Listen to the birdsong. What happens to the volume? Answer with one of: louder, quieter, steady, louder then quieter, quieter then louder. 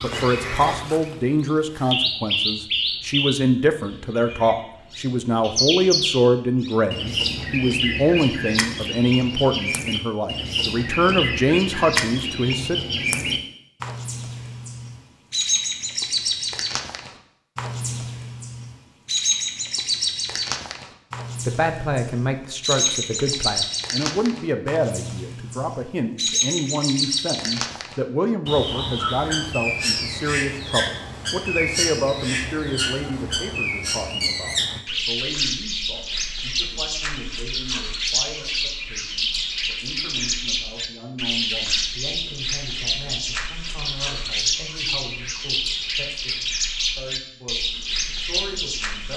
steady.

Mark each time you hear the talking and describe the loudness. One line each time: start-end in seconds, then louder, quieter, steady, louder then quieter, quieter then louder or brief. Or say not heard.
0.0-12.8 steady
21.4-49.1 quieter.